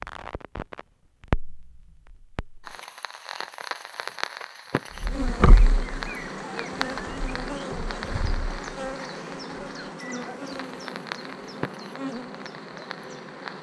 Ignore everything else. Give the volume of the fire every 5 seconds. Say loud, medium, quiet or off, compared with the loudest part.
loud, loud, medium.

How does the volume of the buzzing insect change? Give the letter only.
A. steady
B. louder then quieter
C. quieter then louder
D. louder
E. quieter
E.